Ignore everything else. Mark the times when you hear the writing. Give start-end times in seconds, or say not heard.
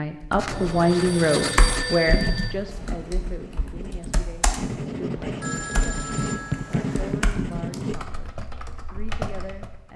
0.3-8.0.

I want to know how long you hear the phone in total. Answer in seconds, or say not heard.
4 s.